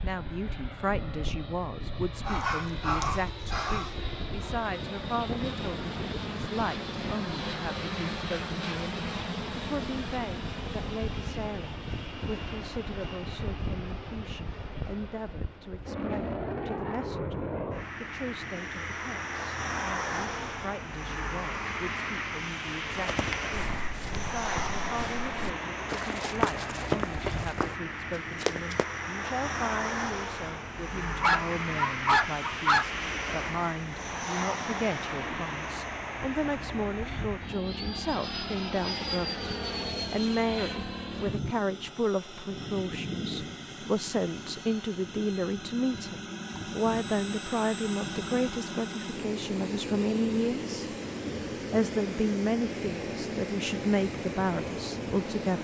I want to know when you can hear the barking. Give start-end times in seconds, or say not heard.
2.2-3.9, 31.2-32.9.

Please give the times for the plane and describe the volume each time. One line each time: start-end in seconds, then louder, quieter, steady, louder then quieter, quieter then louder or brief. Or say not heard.
0.0-55.6 steady.